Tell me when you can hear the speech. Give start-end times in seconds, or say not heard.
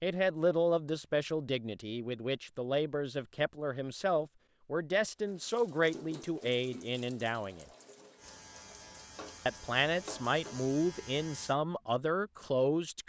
0.0-7.7, 9.4-13.0.